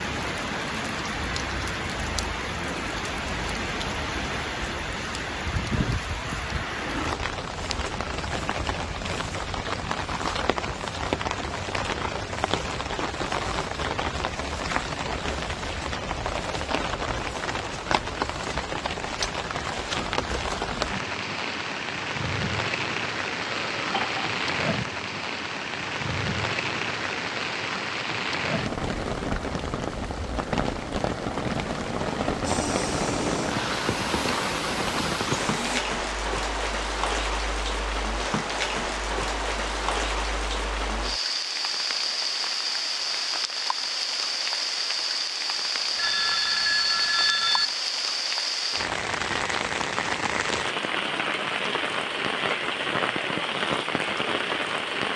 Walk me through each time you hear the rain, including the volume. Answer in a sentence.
The rain can be heard from 0.0 to 55.1 s, at a steady volume.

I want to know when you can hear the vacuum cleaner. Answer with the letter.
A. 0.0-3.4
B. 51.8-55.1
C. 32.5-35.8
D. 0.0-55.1
C.